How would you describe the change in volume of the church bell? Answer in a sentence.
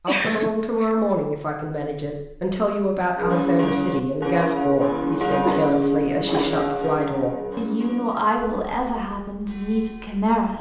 The loudness of the church bell goes down.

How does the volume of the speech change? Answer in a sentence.
The loudness of the speech stays about the same.